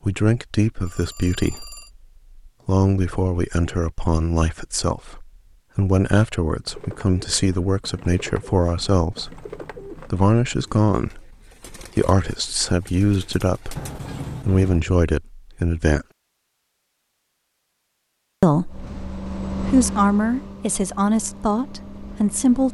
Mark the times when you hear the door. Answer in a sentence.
The door can be heard from 13.8 to 14.8 s.